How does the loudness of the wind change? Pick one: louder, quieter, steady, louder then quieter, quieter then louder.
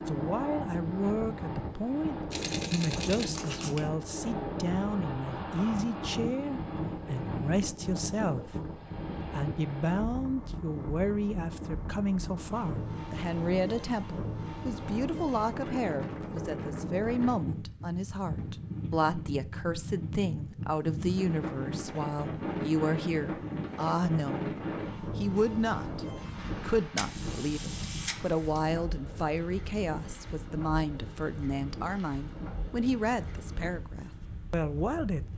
quieter.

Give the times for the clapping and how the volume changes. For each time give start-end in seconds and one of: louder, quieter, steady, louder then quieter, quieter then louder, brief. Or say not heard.
not heard.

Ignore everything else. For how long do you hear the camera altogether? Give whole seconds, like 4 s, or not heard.
3 s.